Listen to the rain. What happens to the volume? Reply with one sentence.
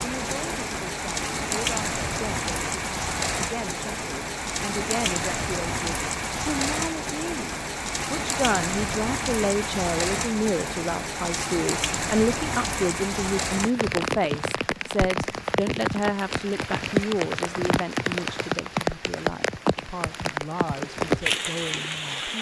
The loudness of the rain stays about the same.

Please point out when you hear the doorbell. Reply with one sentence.
You can't hear the doorbell here.